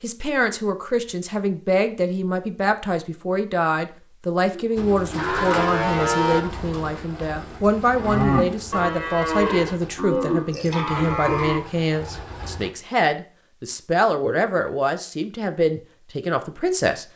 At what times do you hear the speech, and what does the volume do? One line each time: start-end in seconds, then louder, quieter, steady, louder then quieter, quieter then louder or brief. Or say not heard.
0.0-17.1 steady.